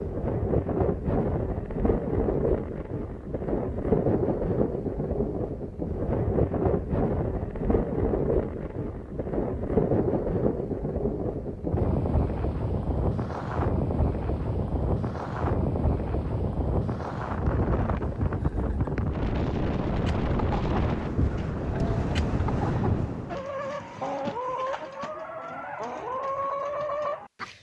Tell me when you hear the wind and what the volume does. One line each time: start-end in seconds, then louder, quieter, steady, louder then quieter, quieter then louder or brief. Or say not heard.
0.0-23.4 steady.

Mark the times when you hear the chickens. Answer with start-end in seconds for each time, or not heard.
19.9-27.5.